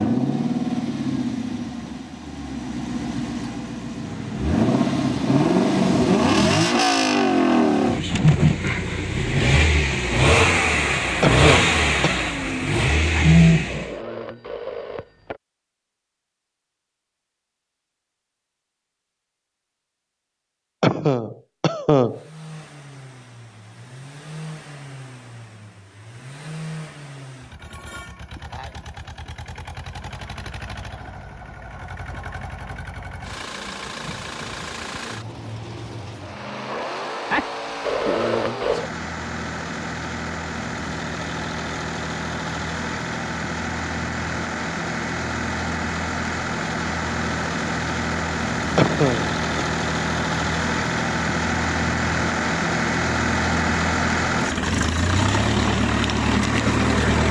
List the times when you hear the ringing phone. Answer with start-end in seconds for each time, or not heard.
13.1-15.4, 37.3-38.9.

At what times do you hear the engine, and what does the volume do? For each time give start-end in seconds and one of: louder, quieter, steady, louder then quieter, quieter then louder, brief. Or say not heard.
0.0-13.9 louder
22.1-57.2 louder.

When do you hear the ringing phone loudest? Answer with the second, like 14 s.
38 s.